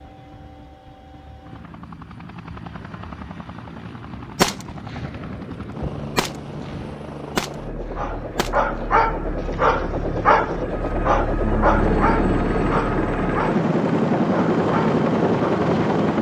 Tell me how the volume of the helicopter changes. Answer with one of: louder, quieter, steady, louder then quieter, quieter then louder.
louder.